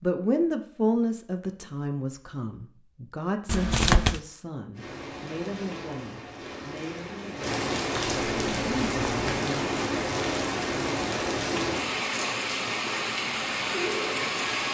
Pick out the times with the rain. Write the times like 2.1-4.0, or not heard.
4.7-14.6.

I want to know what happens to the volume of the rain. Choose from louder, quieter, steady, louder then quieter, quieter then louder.
louder.